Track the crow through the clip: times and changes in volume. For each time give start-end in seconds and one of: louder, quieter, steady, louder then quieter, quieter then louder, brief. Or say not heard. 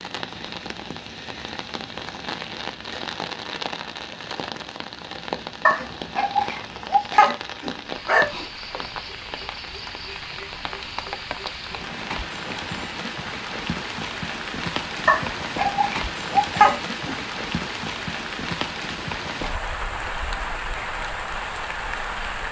not heard.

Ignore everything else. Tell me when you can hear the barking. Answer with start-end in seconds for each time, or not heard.
5.7-8.3, 15.1-17.1.